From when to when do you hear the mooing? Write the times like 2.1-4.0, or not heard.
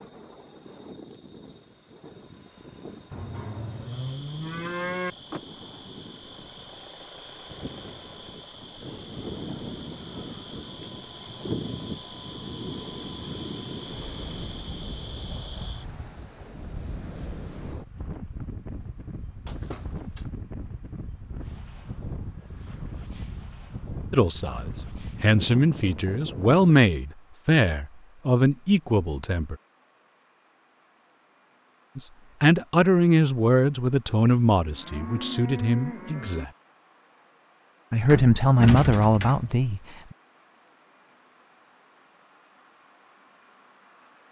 3.1-5.1, 34.5-36.5.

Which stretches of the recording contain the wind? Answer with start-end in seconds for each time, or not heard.
0.0-26.8.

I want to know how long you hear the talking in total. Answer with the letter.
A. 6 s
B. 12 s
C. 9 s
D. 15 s
B.